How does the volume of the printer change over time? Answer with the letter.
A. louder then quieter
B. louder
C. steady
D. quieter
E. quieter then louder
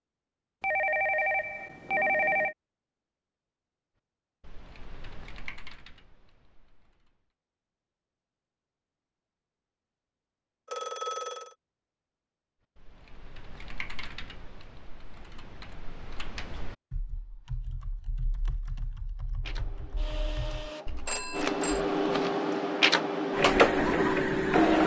B.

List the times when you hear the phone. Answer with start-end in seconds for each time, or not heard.
0.6-2.5, 10.7-11.6, 21.1-21.8.